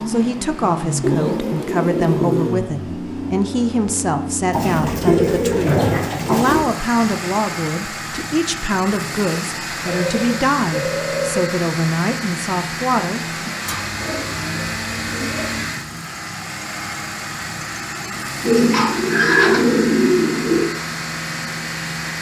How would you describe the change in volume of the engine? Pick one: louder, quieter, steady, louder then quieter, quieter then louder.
steady.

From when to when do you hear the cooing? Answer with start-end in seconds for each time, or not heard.
1.0-2.6, 4.5-6.6, 9.8-11.5, 13.7-15.7, 18.4-20.6.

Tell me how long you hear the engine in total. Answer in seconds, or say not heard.
22 s.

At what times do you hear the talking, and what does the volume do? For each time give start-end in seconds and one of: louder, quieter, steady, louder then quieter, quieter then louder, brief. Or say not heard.
0.1-13.5 steady.